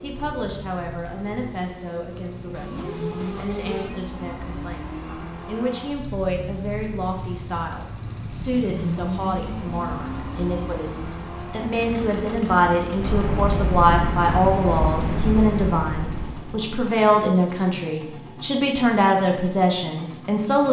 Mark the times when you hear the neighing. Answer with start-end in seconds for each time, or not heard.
not heard.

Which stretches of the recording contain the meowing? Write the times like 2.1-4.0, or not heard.
2.5-4.0.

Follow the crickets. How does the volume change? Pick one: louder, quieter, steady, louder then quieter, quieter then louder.
louder.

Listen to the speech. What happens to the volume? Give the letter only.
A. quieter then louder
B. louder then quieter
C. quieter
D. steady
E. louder
E.